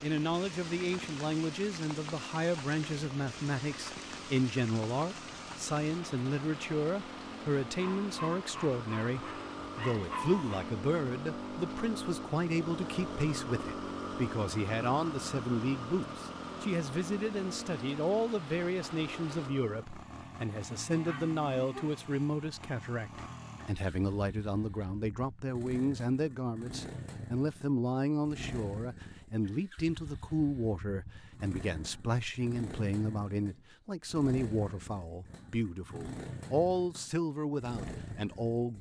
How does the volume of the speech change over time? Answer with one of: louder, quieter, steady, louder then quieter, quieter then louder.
steady.